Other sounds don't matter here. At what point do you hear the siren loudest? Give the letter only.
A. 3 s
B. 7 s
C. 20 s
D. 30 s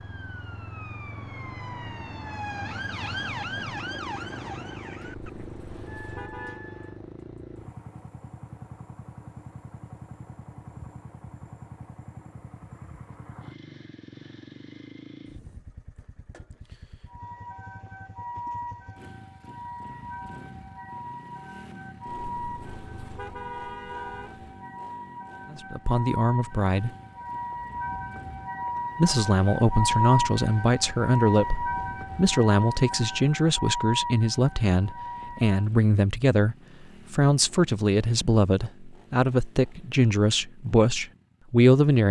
D.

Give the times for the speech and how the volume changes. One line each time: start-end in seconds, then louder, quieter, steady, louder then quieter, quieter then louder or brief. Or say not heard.
25.5-26.9 brief
28.9-42.0 steady.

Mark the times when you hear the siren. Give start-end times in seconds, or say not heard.
0.0-7.0, 17.1-35.7.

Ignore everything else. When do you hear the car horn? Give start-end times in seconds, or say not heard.
5.0-6.6, 22.1-24.4.